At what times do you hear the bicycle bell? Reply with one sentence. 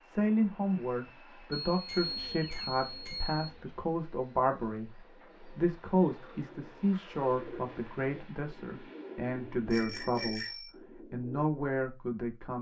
The bicycle bell can be heard from 1.6 to 3.4 s and from 9.7 to 10.7 s.